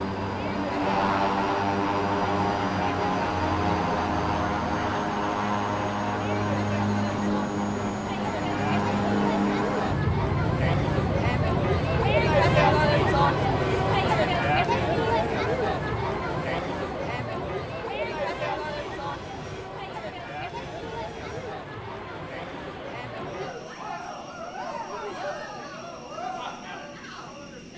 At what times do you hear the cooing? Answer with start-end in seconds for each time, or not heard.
not heard.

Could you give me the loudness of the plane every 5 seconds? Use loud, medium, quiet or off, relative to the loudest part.
loud, loud, loud, quiet, quiet, quiet.